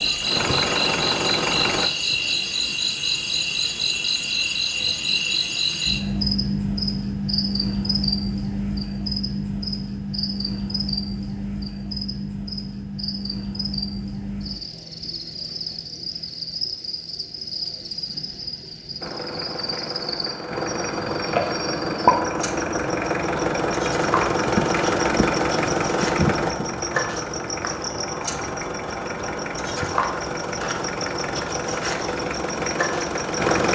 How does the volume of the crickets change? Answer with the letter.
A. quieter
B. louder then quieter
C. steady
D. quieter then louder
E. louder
A.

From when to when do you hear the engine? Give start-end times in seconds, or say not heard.
0.0-1.9, 19.0-33.7.